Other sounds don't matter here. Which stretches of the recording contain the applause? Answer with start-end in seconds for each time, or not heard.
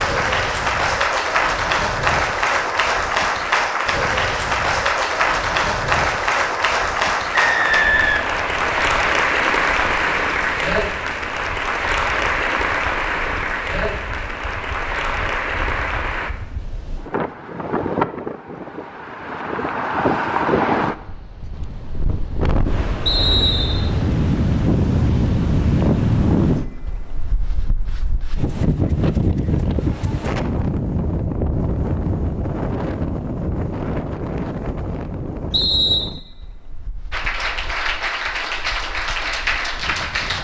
0.0-16.3, 37.1-40.3.